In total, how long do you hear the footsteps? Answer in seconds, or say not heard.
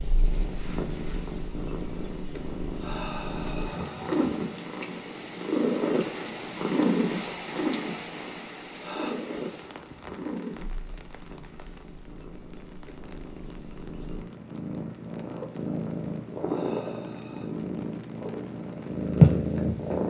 not heard.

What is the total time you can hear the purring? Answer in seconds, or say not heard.
20 s.